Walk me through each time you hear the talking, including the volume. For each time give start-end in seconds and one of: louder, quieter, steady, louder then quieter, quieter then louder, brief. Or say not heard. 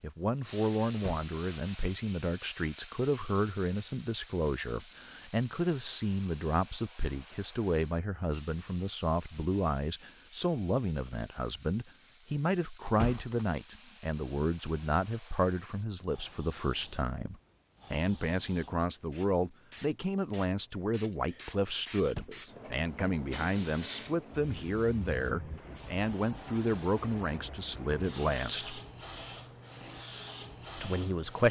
0.0-28.8 steady
30.8-31.4 brief.